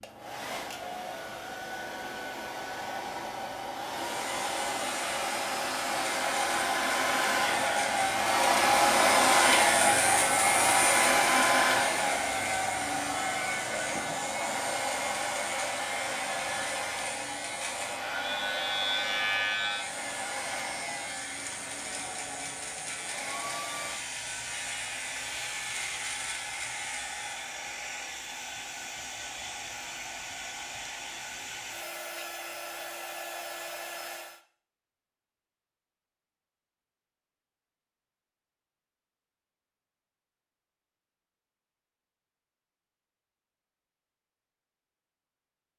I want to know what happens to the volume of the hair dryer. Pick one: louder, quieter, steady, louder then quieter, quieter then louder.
louder then quieter.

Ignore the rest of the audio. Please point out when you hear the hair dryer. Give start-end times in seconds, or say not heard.
0.0-34.4.